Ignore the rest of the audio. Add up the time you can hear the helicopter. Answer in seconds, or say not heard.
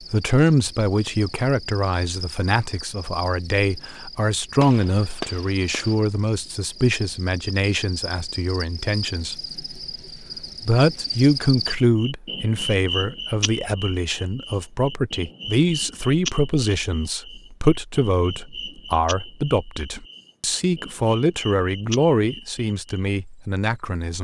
not heard.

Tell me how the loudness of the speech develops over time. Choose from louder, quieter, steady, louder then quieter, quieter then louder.
steady.